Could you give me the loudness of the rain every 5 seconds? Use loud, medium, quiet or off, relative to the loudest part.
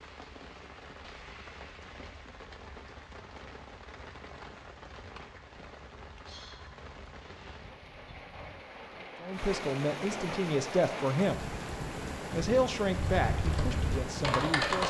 medium, medium, loud.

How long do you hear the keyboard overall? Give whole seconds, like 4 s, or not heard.
2 s.